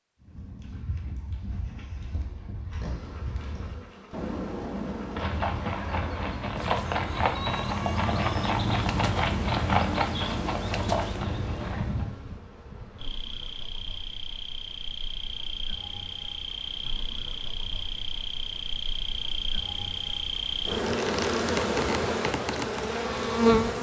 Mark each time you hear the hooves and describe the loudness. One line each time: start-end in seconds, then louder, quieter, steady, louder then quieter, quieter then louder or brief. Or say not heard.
0.2-12.2 louder.